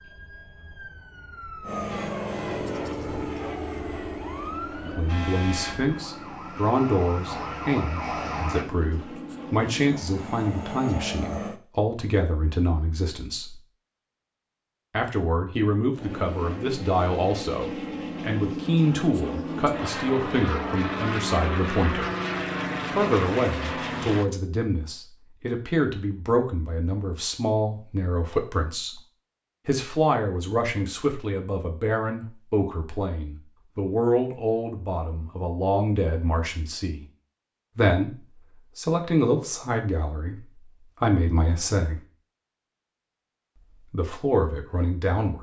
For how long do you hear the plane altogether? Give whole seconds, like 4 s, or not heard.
18 s.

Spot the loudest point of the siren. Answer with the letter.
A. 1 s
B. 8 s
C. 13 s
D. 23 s
B.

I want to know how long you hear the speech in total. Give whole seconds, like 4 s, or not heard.
35 s.